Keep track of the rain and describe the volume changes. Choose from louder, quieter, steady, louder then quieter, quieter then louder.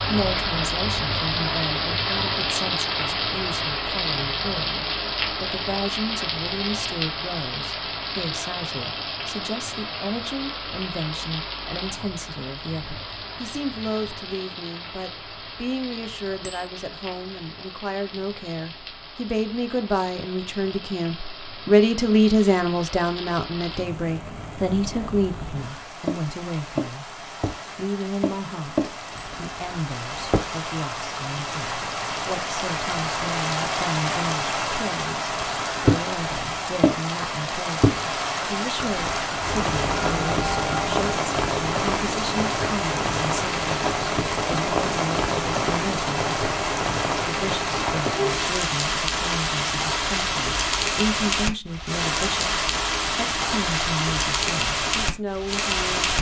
quieter then louder.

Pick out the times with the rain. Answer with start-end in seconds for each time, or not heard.
0.0-56.1.